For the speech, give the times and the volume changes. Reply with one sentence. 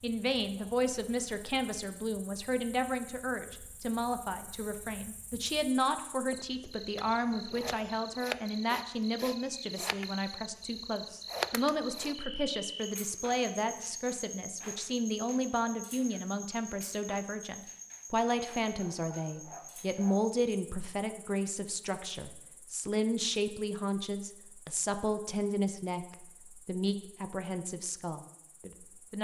You can hear the speech from 0.0 to 29.2 s, at a steady volume.